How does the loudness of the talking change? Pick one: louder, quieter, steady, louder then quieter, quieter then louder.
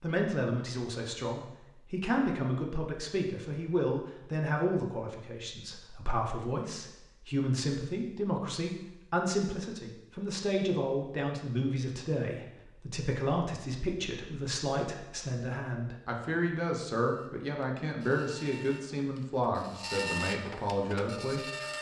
steady.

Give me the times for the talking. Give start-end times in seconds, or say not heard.
0.0-21.7.